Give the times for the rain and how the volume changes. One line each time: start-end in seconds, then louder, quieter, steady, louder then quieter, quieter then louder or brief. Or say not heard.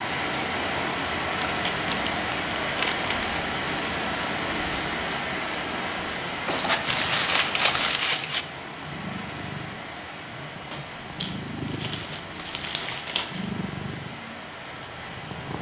0.0-15.5 quieter.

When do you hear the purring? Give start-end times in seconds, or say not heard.
6.7-15.5.